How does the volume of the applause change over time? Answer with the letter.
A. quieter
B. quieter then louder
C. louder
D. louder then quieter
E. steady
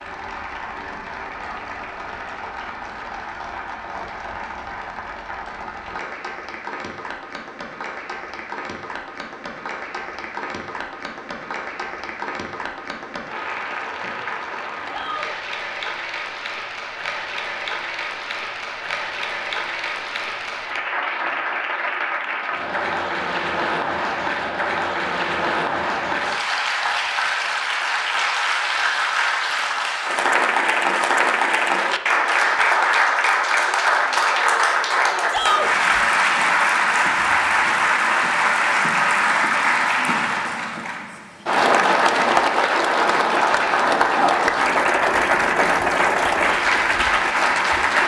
C.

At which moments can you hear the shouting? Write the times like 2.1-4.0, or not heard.
14.8-15.3, 35.3-35.7.